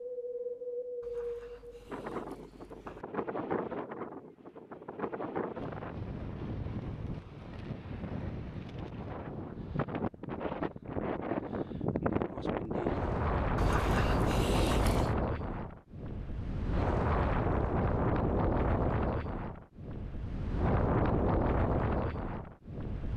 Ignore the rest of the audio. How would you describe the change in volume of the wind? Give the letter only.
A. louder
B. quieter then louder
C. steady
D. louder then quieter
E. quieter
A.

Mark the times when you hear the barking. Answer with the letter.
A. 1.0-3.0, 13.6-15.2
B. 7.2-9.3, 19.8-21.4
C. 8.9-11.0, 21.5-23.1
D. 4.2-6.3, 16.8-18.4
A.